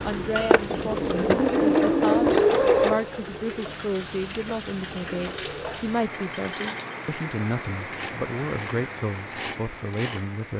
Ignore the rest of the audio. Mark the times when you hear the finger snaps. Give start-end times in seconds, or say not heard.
not heard.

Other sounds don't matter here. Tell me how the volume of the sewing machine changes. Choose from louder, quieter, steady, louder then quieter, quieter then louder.
quieter.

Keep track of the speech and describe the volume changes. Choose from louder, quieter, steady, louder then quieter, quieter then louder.
steady.